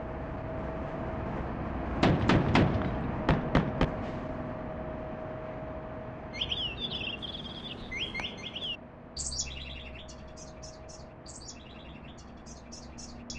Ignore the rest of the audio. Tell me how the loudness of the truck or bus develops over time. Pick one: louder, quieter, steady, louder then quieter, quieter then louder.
quieter.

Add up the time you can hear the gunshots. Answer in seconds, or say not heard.
2 s.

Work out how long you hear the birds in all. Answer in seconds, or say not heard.
7 s.